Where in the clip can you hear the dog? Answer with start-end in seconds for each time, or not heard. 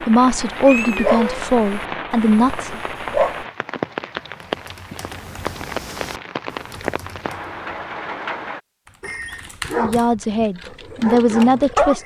0.0-3.5, 9.0-12.0.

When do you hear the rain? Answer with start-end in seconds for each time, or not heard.
0.0-8.6.